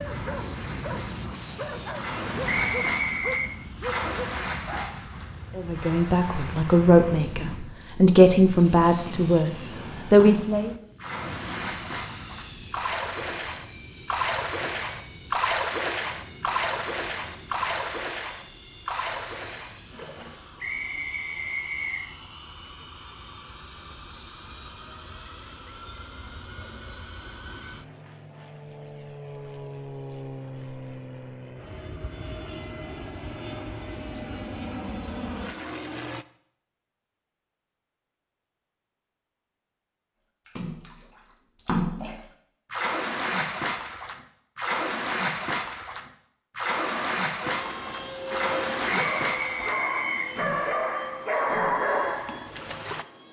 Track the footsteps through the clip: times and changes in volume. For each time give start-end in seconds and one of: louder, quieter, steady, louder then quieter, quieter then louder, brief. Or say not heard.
not heard.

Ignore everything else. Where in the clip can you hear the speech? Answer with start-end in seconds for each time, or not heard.
5.5-10.7.